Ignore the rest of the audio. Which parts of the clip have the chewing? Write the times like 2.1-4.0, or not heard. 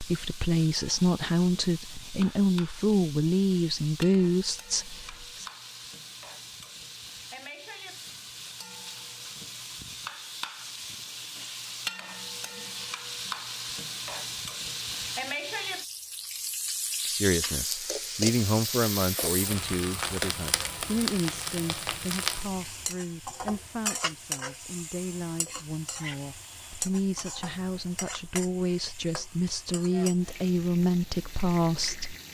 not heard.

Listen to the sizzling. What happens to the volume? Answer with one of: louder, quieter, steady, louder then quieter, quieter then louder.
louder then quieter.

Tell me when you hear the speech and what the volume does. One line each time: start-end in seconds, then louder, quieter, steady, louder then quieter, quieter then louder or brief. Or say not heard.
0.0-5.5 steady
17.1-32.1 quieter then louder.